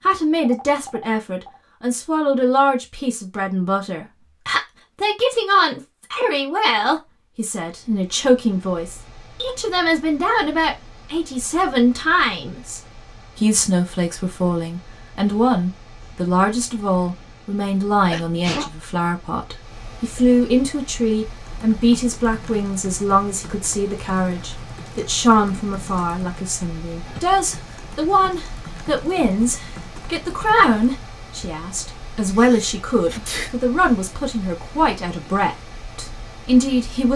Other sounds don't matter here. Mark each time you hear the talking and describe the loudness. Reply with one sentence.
You can hear the talking from 0.1 to 37.1 s, at a steady volume.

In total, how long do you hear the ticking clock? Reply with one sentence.
You can't hear the ticking clock here.